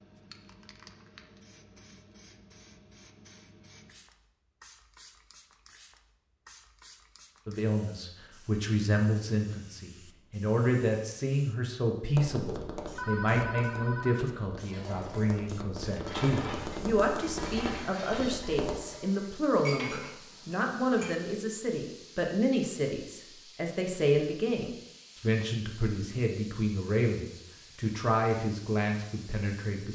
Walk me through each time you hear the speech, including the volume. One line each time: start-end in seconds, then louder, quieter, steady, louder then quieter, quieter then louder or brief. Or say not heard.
7.5-29.9 steady.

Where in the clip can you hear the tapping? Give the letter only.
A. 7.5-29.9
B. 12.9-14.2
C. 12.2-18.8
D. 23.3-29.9
C.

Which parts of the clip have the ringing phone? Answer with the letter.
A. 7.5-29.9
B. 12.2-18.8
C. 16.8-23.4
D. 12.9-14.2
D.